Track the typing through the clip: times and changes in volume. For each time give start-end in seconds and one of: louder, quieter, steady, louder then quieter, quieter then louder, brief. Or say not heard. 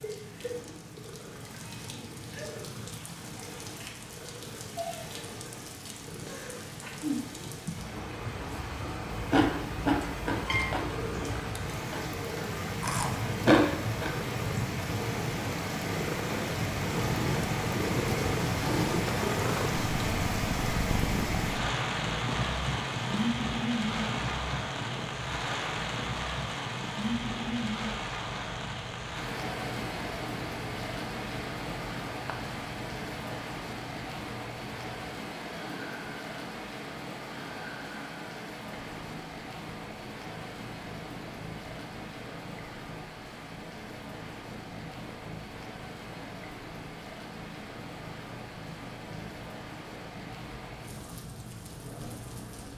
not heard.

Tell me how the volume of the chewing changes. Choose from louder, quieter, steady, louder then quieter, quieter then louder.
quieter then louder.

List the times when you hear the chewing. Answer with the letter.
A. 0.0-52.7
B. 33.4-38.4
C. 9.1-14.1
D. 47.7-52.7
C.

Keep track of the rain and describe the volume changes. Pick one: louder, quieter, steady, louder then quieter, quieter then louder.
louder then quieter.